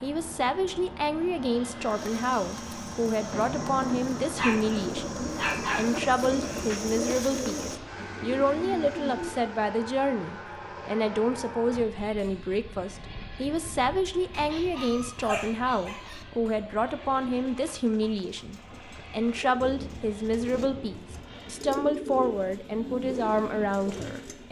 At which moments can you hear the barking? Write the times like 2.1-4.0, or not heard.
4.3-6.0, 14.3-16.2.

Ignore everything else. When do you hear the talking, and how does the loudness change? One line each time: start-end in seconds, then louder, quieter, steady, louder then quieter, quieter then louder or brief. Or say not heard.
0.0-24.4 steady.